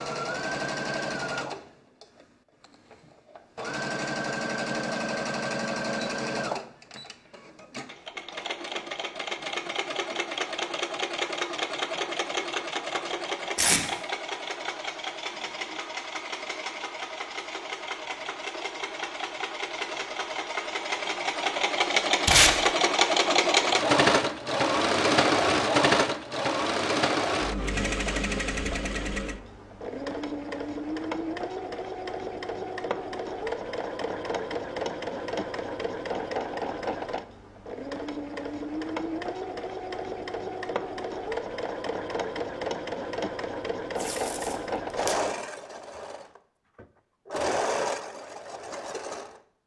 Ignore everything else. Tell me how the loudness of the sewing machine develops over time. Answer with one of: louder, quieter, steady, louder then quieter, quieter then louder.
louder then quieter.